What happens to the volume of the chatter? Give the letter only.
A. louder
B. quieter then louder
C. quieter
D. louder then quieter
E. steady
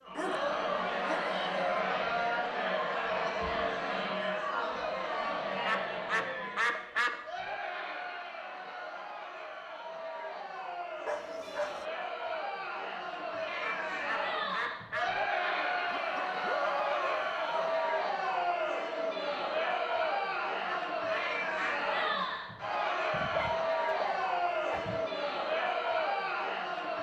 B.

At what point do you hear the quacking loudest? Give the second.
7 s.